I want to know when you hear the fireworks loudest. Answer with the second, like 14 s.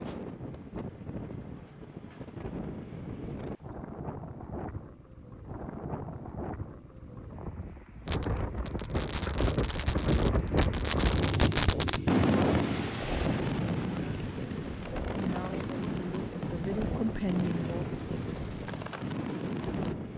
12 s.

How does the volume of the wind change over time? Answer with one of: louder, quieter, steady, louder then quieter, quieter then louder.
louder then quieter.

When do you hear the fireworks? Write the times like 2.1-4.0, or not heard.
8.1-19.9.